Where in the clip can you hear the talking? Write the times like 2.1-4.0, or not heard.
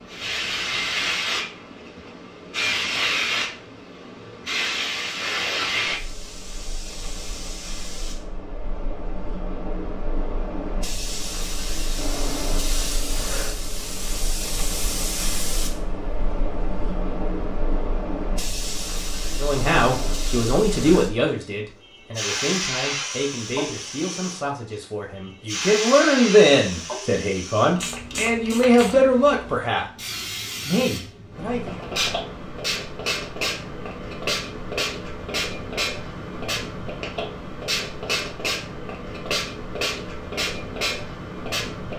19.4-31.9.